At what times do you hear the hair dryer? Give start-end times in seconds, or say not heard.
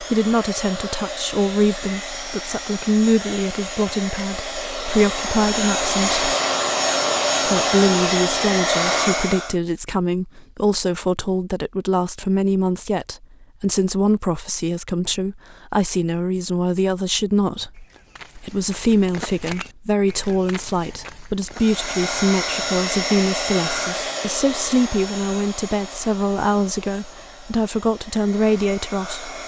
0.0-9.6, 21.5-29.4.